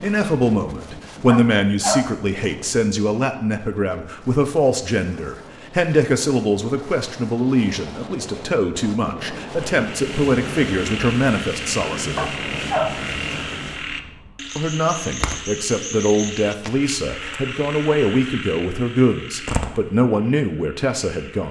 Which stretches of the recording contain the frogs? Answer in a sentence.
The frogs can be heard from 9.6 to 21.4 s.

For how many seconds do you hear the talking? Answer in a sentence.
The talking can be heard for 19 seconds in total.